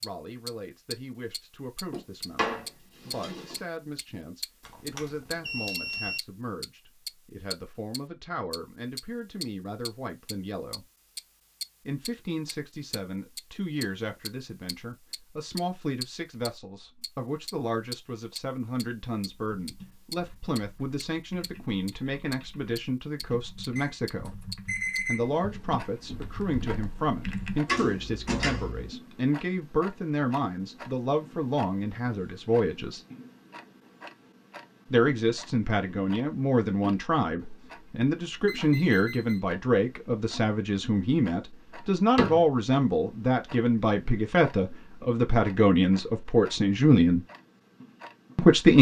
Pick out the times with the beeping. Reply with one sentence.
The beeping can be heard from 4.7 to 6.2 s, from 23.8 to 25.3 s and from 38.5 to 39.5 s.